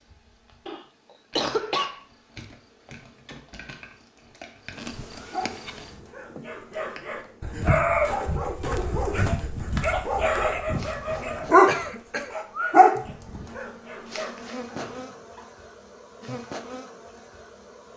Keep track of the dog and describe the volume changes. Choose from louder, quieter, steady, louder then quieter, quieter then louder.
louder then quieter.